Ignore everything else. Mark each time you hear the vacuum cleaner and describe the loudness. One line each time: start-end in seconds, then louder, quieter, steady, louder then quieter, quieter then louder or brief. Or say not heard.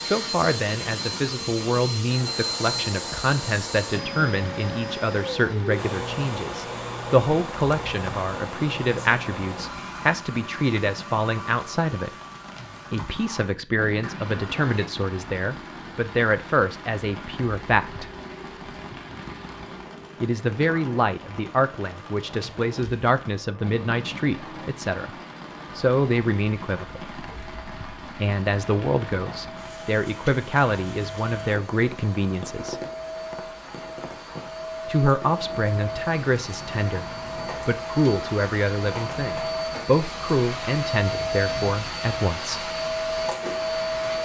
0.0-44.2 quieter then louder.